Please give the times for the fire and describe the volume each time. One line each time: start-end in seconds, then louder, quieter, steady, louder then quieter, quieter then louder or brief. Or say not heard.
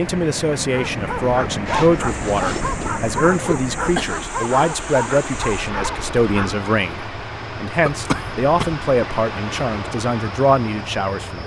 not heard.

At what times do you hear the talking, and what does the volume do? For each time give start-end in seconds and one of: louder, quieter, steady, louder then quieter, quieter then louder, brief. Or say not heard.
0.0-11.4 steady.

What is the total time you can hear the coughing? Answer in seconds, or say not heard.
2 s.